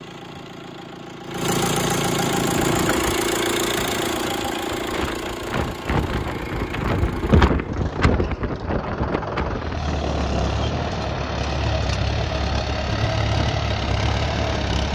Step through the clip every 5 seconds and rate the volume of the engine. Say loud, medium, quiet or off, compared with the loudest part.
loud, medium, loud.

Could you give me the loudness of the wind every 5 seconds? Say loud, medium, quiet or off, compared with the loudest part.
medium, loud, medium.